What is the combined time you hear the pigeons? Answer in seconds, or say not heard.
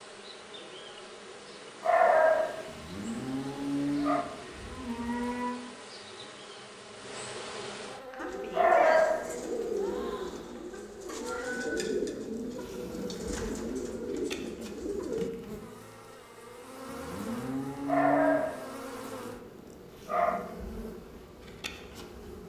7 s.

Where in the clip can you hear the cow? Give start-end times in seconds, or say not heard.
2.6-5.6, 16.9-18.5.